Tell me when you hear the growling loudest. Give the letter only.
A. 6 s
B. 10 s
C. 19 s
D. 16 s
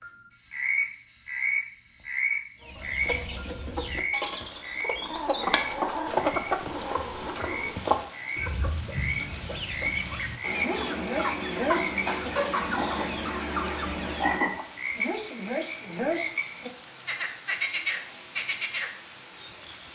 A.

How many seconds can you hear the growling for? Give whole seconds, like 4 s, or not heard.
3 s.